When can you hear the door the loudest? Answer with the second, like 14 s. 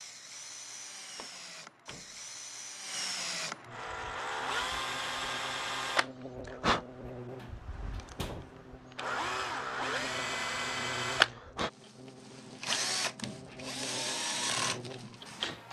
8 s.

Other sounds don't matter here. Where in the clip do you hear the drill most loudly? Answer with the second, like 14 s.
11 s.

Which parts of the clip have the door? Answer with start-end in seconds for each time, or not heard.
1.1-2.2, 7.3-8.6, 13.2-13.8.